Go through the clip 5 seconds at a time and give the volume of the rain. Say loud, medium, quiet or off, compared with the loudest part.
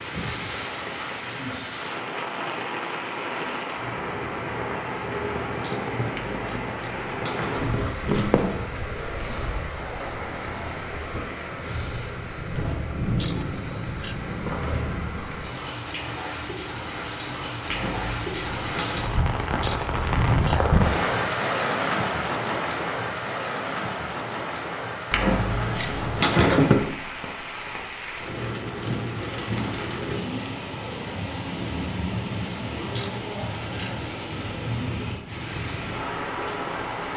medium, medium, medium, medium, loud, medium, medium, medium.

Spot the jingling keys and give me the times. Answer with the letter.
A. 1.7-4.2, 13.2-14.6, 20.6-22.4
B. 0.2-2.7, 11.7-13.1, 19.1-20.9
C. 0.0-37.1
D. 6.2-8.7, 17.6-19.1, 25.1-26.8
D.